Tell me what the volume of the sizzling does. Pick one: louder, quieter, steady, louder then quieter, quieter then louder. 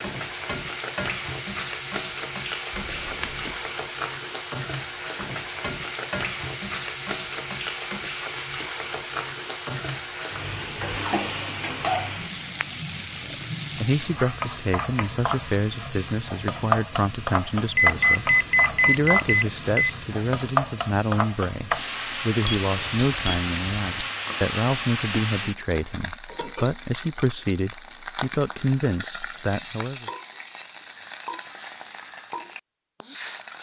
steady.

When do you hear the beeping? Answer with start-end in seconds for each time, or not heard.
2.7-3.5, 17.8-19.9, 22.4-23.8.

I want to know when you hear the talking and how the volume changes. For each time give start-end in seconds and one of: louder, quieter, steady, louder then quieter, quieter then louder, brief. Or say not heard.
13.2-30.1 steady.